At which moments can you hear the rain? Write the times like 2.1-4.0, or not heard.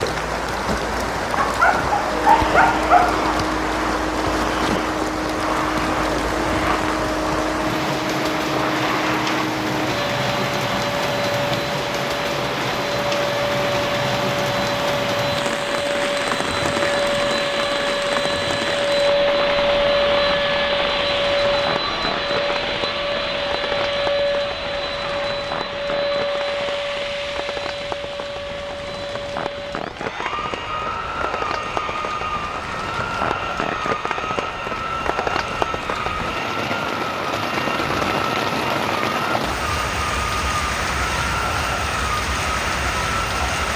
0.0-43.7.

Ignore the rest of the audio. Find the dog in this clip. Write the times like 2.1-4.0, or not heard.
1.3-3.2.